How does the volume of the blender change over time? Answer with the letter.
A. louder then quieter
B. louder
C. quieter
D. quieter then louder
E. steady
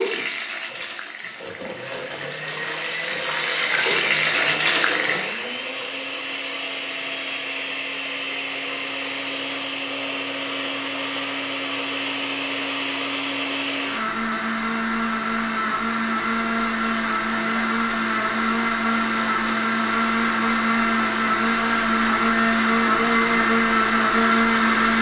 B.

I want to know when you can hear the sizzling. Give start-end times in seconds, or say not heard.
0.0-5.5.